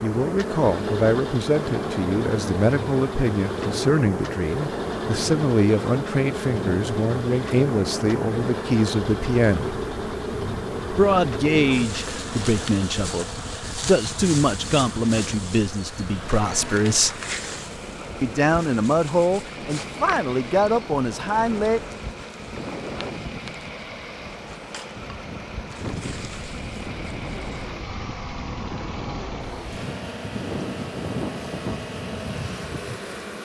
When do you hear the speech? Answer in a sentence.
You can hear the speech from 0.0 to 9.8 s, from 10.9 to 17.1 s and from 18.2 to 21.8 s.